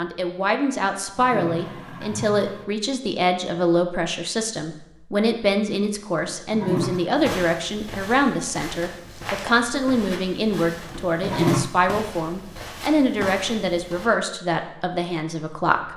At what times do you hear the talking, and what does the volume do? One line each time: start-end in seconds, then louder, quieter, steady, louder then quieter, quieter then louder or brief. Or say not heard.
0.0-15.9 steady.